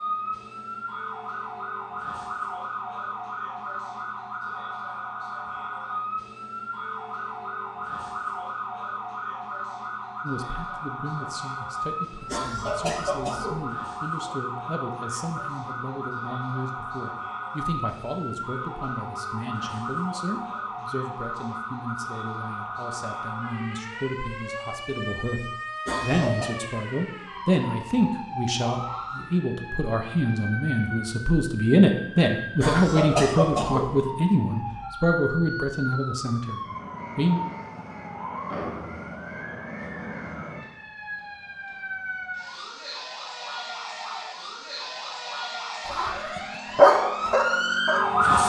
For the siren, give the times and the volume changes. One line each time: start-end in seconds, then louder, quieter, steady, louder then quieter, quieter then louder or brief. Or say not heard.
0.0-48.4 steady.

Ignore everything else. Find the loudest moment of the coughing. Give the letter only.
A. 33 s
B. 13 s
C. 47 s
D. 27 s
A.